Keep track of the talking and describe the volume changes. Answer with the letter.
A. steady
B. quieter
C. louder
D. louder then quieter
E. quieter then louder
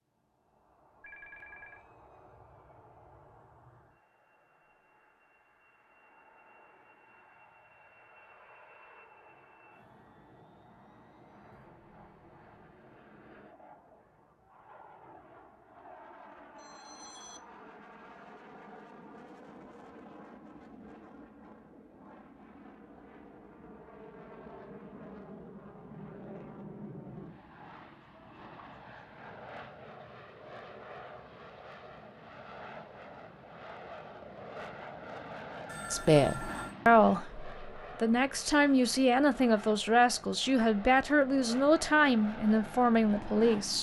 A.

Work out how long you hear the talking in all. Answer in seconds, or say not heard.
8 s.